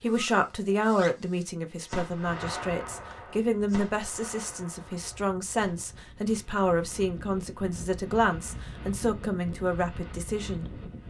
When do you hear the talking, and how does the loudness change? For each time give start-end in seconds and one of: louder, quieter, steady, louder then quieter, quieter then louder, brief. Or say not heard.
0.0-10.8 steady.